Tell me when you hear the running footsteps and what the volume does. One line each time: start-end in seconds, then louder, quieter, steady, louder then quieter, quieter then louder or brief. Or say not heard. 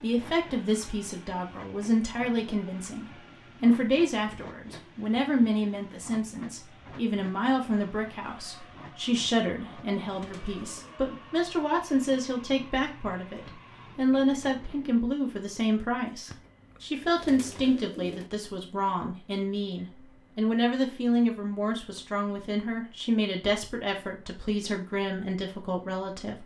not heard.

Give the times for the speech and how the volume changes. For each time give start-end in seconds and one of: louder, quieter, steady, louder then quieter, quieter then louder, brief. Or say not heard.
0.0-26.4 steady.